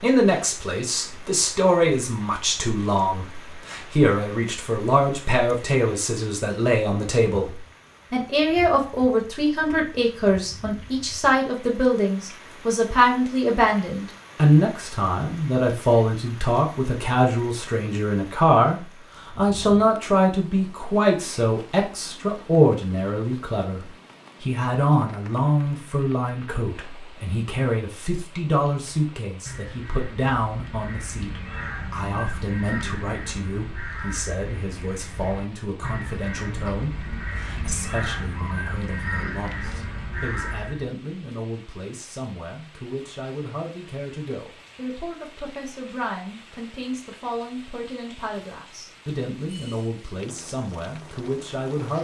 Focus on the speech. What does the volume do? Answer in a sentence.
The volume of the speech goes down.